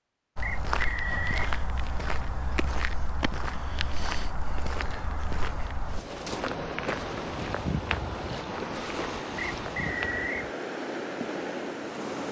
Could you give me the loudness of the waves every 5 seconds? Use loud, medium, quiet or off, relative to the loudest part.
off, loud, loud.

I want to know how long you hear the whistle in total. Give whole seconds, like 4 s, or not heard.
2 s.